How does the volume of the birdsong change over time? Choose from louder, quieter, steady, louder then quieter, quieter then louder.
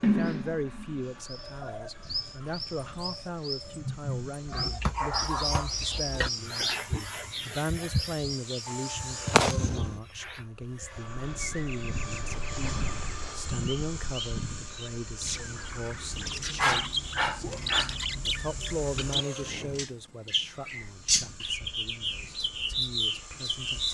quieter then louder.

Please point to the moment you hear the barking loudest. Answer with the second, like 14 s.
17 s.